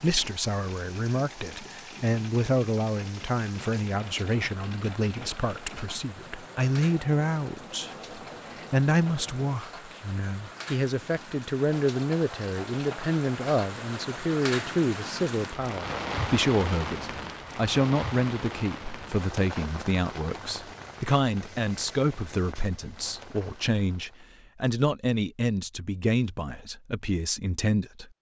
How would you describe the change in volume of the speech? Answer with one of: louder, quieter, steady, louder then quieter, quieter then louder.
steady.